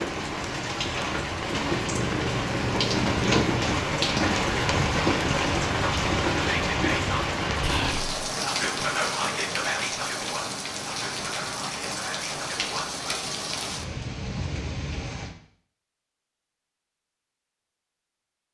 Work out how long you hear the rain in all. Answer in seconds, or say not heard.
15 s.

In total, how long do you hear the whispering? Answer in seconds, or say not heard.
7 s.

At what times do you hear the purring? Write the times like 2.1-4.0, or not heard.
1.6-3.6.